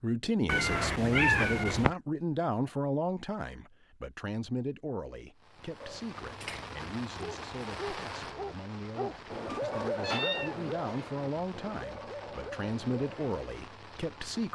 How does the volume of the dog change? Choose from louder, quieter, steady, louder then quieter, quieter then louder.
louder then quieter.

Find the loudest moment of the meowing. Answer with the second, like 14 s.
1 s.